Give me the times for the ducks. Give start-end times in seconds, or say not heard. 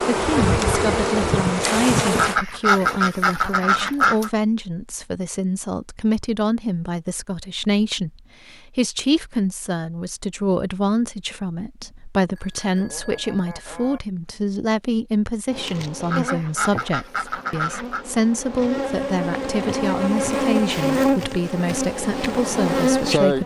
2.1-4.3, 16.1-18.1.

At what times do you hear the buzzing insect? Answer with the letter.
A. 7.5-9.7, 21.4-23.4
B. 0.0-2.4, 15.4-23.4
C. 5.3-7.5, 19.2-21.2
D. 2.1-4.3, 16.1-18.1
B.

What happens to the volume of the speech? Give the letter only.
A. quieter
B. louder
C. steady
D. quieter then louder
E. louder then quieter
C.